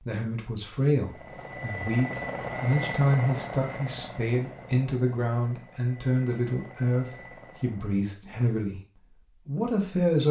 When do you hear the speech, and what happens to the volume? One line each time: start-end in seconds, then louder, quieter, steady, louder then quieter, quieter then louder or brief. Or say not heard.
0.0-10.2 steady.